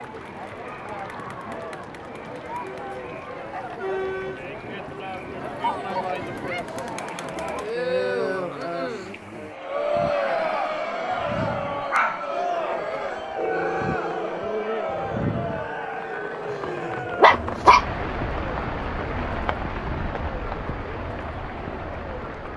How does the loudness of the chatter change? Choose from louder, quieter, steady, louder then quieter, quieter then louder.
louder then quieter.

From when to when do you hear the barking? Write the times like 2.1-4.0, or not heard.
11.7-17.9.